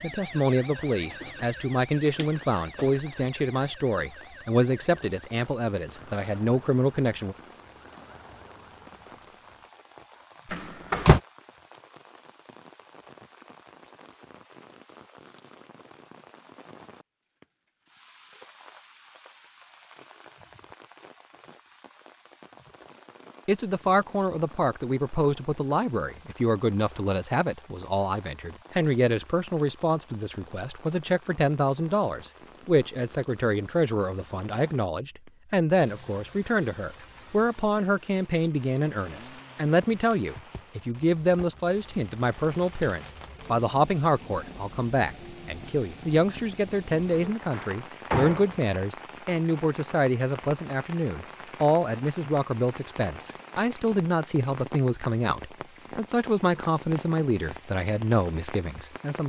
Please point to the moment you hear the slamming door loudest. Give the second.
11 s.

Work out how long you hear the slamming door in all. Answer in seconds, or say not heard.
2 s.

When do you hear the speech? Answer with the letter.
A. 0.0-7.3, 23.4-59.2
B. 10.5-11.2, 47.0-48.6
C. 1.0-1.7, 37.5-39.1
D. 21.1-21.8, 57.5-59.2
A.